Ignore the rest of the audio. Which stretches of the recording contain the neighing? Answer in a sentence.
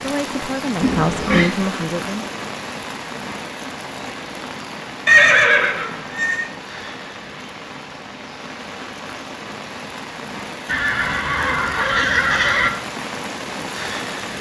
The neighing can be heard from 0.8 to 1.5 s, from 5.0 to 6.5 s and from 10.7 to 12.7 s.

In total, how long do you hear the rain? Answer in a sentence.
You can hear the rain for 14 seconds altogether.